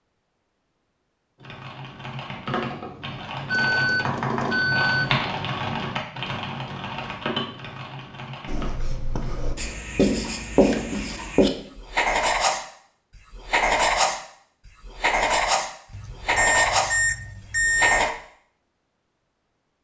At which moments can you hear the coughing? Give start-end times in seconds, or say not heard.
not heard.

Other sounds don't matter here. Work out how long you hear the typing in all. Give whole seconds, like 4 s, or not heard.
7 s.